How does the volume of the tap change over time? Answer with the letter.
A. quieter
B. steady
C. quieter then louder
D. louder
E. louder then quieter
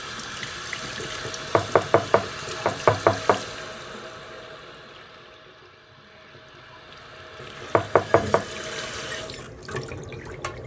C.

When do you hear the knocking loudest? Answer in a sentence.
The loudest moment of the knocking is at 3 seconds.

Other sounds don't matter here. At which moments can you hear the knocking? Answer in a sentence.
You can hear the knocking from 1.6 to 3.4 s and from 7.8 to 8.4 s.